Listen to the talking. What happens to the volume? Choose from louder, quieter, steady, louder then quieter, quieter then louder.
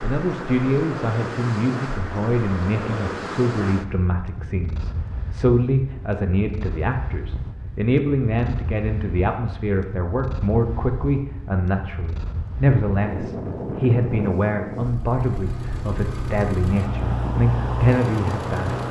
steady.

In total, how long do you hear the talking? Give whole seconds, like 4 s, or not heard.
19 s.